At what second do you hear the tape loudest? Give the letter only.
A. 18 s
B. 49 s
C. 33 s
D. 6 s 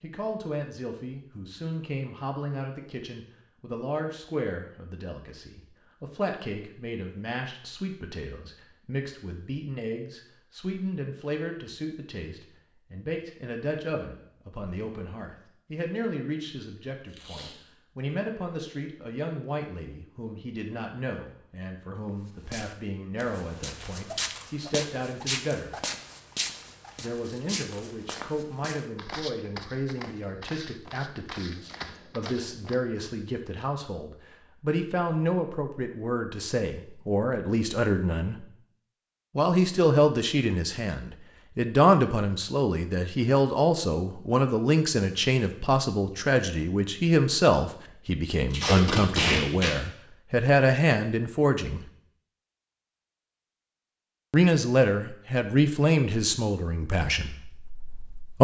B.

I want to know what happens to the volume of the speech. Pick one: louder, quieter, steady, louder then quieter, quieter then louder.
louder.